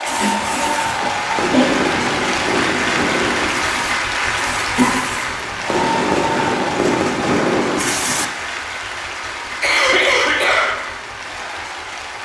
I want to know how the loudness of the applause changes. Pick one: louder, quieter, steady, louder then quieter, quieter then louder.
quieter.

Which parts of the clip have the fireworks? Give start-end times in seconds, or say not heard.
0.1-8.2.